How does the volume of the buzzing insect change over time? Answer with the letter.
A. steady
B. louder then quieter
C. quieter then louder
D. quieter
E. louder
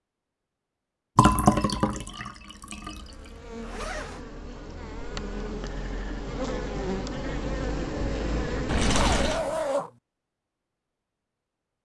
E.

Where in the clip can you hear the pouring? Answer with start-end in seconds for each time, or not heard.
1.1-3.0, 8.7-9.4.